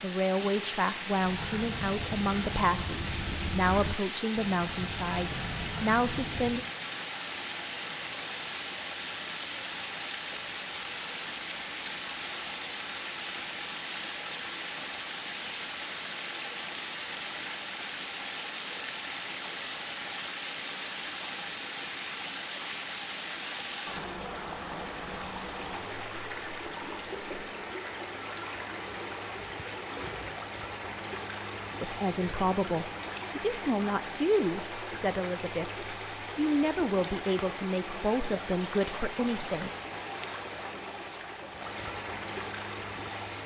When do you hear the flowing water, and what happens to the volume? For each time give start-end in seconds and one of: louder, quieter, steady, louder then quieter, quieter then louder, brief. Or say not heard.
0.0-43.4 steady.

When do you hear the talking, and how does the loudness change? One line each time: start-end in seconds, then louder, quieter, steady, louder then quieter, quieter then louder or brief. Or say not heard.
0.0-6.6 steady
31.8-39.7 steady.